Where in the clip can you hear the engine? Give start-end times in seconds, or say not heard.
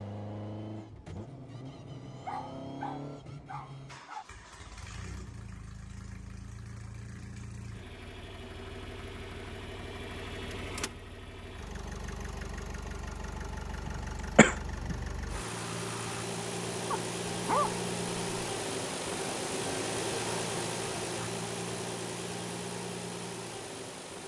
0.0-24.2.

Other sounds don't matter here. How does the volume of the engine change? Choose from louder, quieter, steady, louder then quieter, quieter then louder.
louder.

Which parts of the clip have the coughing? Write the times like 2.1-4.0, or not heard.
13.8-14.9.